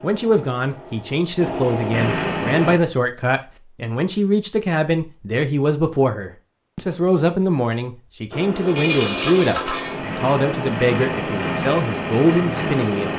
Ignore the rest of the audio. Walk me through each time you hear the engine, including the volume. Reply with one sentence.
You can hear the engine briefly from 0.0 to 2.8 s; and from 8.3 to 13.1 s, at a steady volume.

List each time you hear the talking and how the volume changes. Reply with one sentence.
You can hear the talking from 0.0 to 13.1 s, at a steady volume.